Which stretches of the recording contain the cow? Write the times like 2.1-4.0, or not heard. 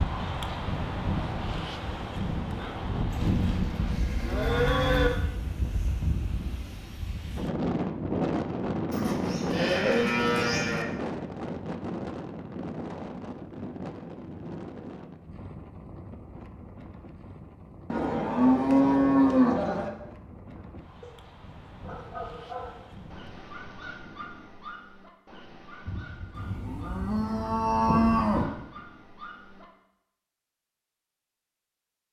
3.1-5.1, 8.9-10.8, 17.9-19.9, 25.9-28.5.